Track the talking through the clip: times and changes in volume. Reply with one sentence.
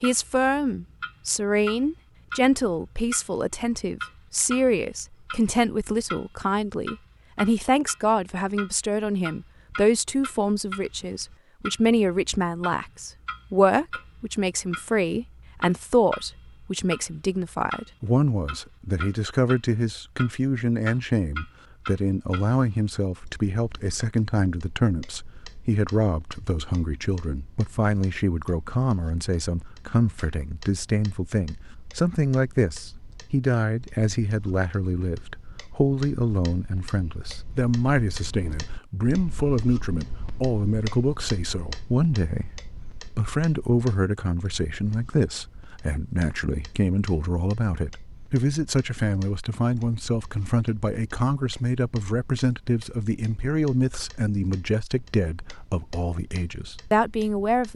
The talking can be heard from 0.0 to 57.7 s, at a steady volume.